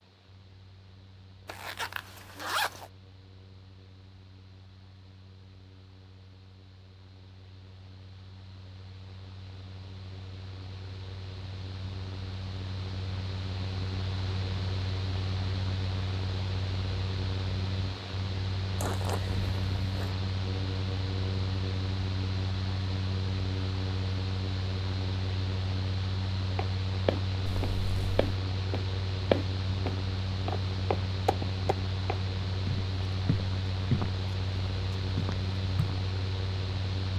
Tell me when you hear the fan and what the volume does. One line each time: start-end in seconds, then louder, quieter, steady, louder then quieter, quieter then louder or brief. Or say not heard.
0.0-37.1 louder.